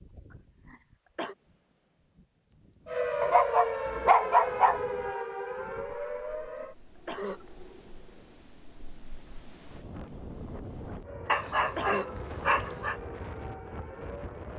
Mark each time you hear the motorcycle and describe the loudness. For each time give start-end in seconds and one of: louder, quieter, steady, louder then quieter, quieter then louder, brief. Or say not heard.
not heard.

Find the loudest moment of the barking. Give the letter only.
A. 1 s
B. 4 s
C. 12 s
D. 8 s
B.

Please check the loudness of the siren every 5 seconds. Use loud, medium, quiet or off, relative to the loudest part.
loud, medium, quiet.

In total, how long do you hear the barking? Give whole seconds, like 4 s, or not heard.
3 s.